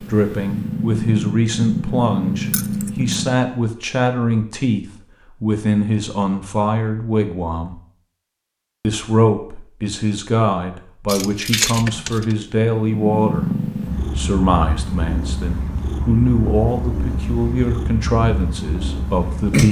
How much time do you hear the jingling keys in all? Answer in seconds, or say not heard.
2 s.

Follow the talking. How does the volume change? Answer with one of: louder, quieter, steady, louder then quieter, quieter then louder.
steady.